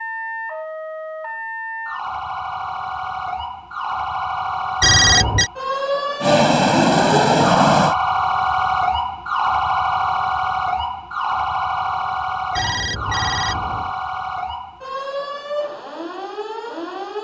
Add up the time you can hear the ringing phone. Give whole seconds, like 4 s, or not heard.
2 s.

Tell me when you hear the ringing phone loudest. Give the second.
5 s.